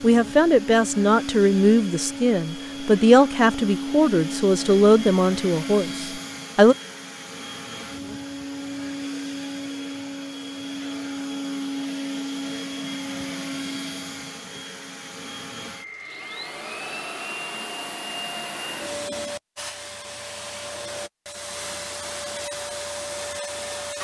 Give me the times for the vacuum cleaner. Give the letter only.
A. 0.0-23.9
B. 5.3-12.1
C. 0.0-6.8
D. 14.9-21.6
A.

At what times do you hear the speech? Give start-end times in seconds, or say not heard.
0.0-6.8.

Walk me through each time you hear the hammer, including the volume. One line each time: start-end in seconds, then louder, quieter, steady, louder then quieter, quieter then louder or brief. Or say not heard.
not heard.